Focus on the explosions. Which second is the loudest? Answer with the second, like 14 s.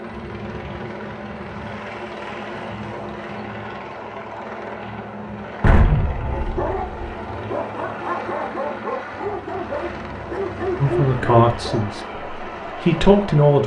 6 s.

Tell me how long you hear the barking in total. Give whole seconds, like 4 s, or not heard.
6 s.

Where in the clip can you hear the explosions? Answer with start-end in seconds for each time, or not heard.
5.6-7.1.